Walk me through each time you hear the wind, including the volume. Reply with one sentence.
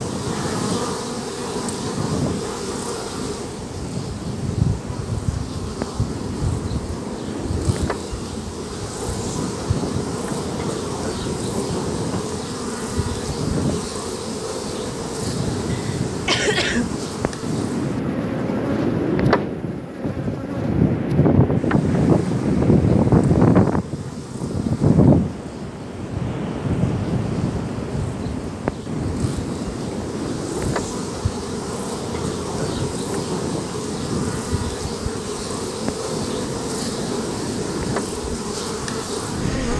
You can hear the wind from 0.0 to 39.7 s, getting louder then quieter.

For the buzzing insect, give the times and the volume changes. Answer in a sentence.
You can hear the buzzing insect from 0.0 to 39.7 s, getting quieter then louder.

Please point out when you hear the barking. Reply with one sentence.
You can't hear the barking here.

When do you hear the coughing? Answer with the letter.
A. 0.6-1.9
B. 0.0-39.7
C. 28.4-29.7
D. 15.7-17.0
D.